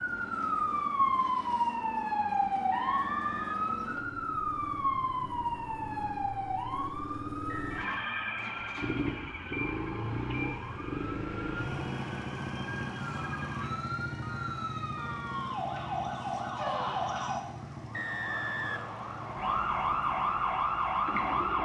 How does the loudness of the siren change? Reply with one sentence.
The volume of the siren goes down, then up.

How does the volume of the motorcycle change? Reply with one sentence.
The loudness of the motorcycle goes up, then down.